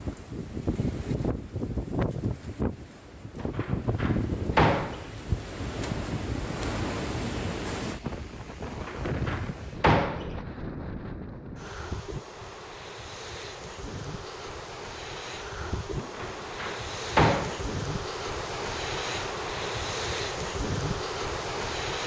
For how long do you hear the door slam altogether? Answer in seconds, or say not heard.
5 s.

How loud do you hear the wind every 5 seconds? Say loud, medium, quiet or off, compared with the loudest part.
loud, loud, medium, loud, loud.